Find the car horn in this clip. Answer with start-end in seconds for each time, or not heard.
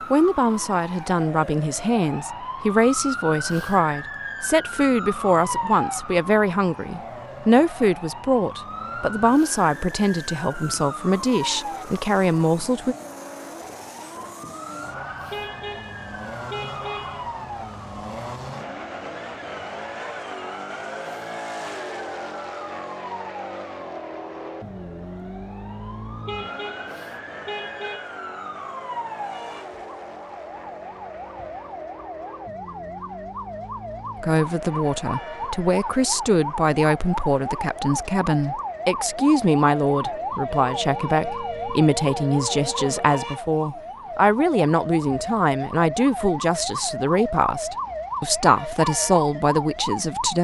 15.3-17.2, 26.2-28.1.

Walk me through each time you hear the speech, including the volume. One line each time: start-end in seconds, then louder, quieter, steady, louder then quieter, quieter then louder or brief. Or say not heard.
0.1-12.9 steady
34.2-50.3 steady.